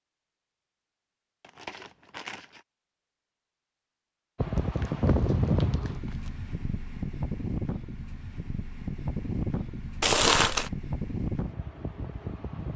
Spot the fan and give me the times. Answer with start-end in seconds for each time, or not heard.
4.3-12.7.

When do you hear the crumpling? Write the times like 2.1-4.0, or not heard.
1.4-2.6, 4.5-6.3, 10.0-10.7.